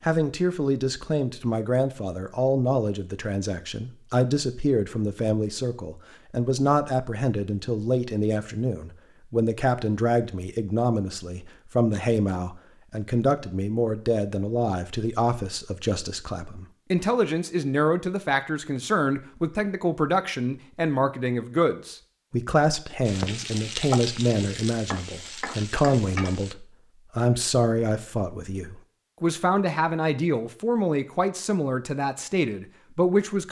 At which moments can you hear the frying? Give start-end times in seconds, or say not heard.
23.1-26.6.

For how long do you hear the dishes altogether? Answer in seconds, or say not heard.
not heard.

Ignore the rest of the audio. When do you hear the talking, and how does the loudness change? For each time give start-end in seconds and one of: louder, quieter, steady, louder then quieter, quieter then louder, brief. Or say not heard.
0.0-33.4 steady.